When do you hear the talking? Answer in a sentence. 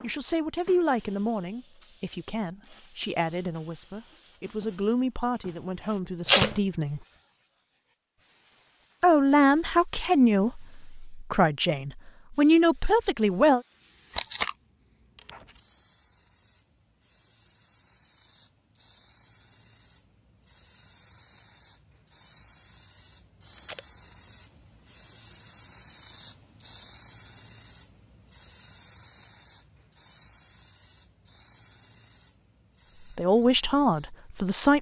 The talking can be heard from 0.0 to 7.0 s, from 9.0 to 13.6 s and from 33.1 to 34.7 s.